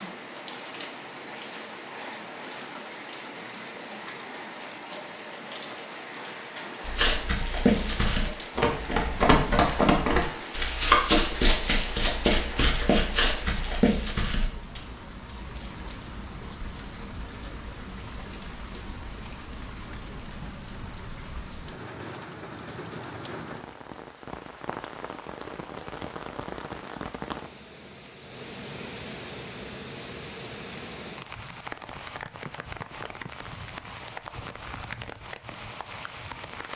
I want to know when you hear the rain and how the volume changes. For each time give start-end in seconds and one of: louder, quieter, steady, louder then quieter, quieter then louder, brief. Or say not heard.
0.0-36.7 steady.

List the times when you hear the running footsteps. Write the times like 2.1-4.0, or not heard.
6.8-14.8.